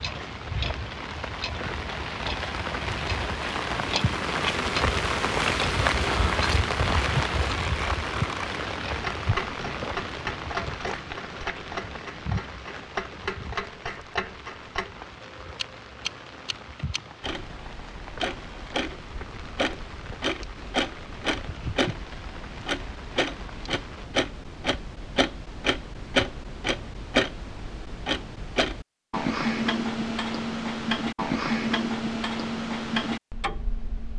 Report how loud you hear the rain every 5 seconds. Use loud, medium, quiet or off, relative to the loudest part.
loud, loud, medium, quiet, quiet, off, off.